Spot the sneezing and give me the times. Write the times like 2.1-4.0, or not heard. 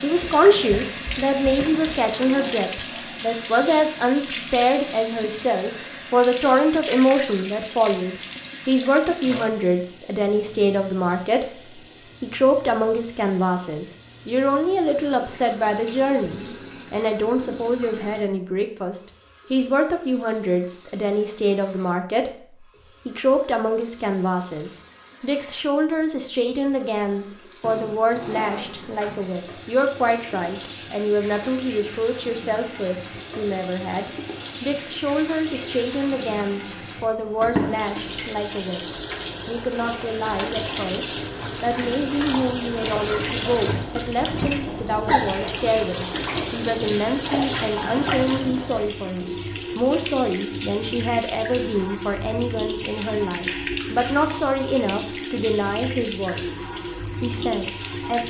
not heard.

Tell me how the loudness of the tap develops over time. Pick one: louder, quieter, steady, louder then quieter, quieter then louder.
quieter then louder.